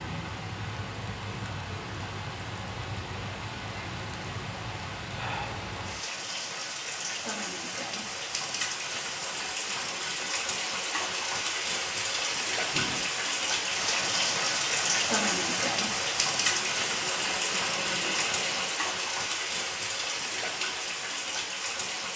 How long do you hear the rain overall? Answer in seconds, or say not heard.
22 s.